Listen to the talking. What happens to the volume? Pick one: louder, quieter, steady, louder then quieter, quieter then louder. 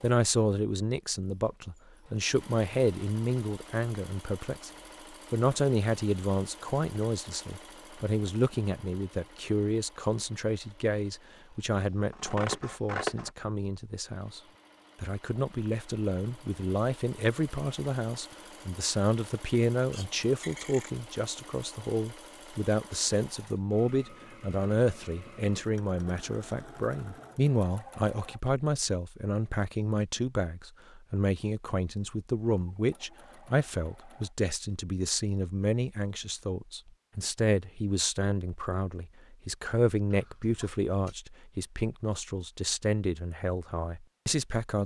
steady.